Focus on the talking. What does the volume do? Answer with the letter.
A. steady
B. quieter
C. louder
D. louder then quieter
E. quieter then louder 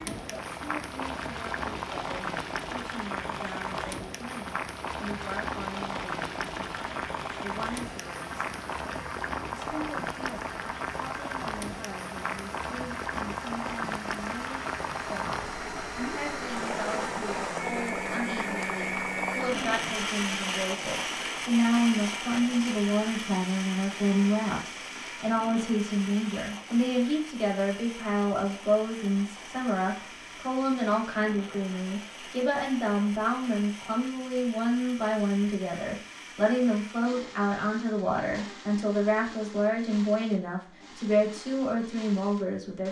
C.